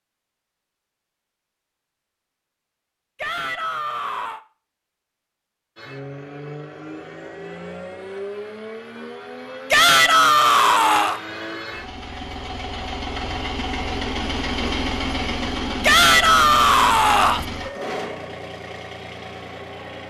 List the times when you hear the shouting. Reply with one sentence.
The shouting can be heard from 3.1 to 4.4 s, from 9.7 to 11.2 s and from 15.8 to 17.4 s.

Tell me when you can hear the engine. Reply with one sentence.
The engine can be heard from 5.8 to 20.0 s.